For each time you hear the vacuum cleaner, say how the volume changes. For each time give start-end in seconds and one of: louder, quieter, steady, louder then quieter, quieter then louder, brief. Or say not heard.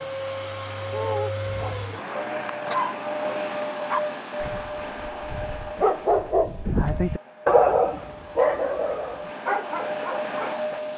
0.0-10.9 quieter then louder.